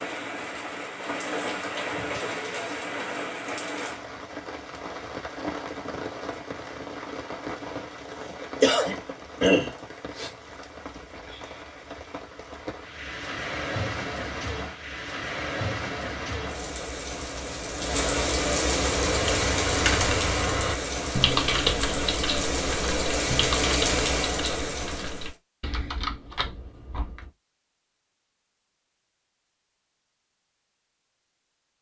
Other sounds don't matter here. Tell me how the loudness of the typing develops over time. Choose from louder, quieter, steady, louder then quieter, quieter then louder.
quieter.